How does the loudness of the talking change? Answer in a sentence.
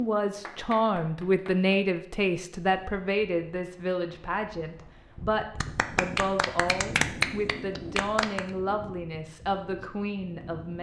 The volume of the talking goes down.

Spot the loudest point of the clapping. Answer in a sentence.
The loudest moment of the clapping is at 7 seconds.